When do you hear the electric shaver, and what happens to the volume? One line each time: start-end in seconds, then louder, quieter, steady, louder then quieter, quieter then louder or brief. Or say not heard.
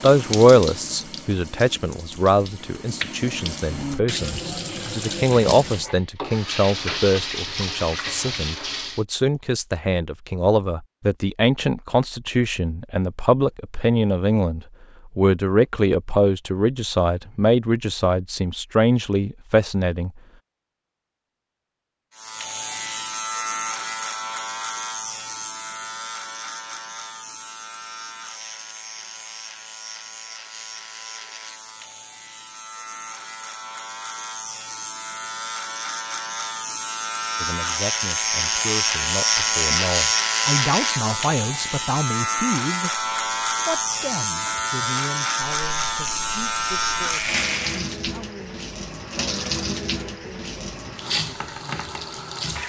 22.1-48.0 quieter then louder.